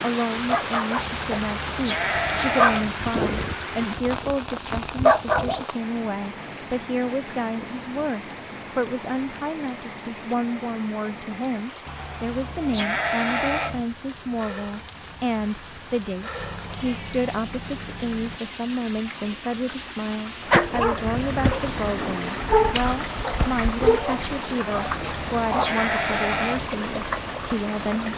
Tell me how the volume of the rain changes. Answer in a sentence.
The loudness of the rain goes down, then up.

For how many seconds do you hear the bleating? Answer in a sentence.
The bleating can be heard for 6 seconds in total.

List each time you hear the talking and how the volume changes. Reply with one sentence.
The talking can be heard from 0.0 to 28.1 s, at a steady volume.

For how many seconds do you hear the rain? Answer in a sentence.
The rain can be heard for 28 seconds in total.